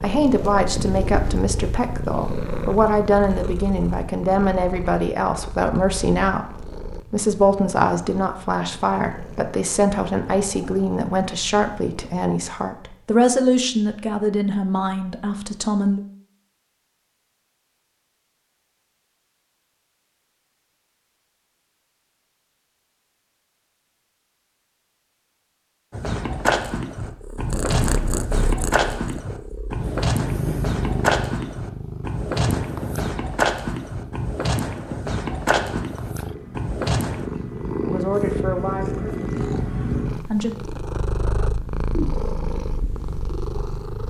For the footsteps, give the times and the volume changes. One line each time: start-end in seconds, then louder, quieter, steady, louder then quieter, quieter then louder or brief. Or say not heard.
25.9-37.3 steady.